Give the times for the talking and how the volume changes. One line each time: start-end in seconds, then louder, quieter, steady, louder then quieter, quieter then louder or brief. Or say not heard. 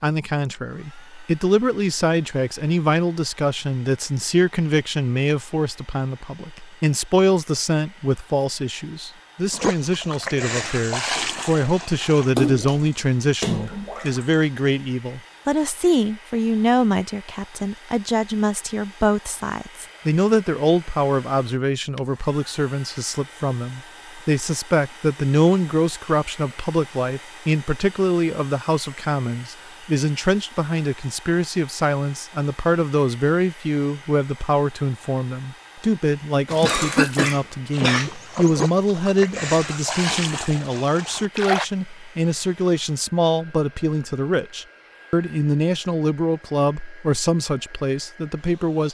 0.0-48.8 steady.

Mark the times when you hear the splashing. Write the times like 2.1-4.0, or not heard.
9.5-14.4, 36.5-41.6.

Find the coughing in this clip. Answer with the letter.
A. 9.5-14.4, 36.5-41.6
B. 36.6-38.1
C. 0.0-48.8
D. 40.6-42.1
B.